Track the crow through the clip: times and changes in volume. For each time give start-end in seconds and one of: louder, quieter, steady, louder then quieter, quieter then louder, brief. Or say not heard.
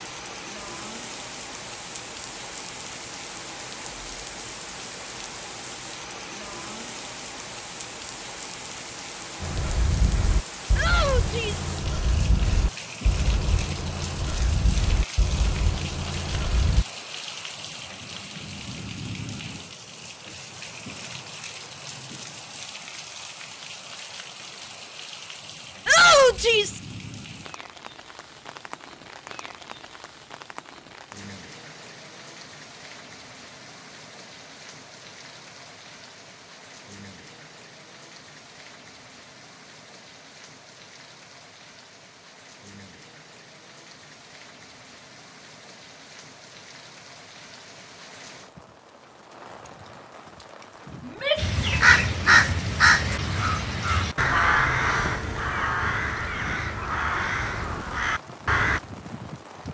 9.4-16.9 steady
51.4-58.8 quieter.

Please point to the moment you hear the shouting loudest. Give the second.
26 s.